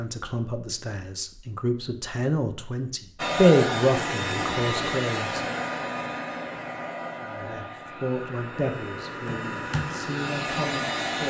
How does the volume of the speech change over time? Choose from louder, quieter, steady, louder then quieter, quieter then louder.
louder then quieter.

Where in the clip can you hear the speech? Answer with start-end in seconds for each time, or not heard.
0.0-5.4, 7.2-11.2.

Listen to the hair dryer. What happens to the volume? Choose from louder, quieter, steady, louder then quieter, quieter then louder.
quieter then louder.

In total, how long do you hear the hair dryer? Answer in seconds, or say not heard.
8 s.